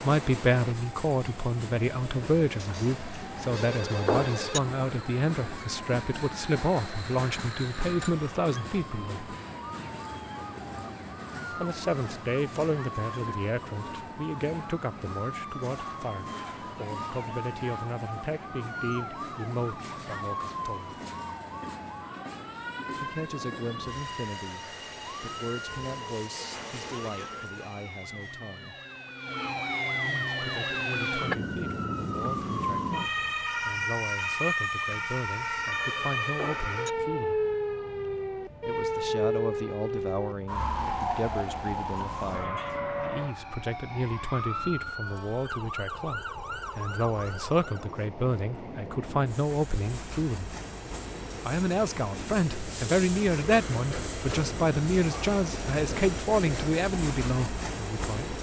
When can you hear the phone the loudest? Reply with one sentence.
The loudest moment of the phone is at 4 seconds.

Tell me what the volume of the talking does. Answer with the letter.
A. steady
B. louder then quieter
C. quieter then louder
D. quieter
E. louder
C.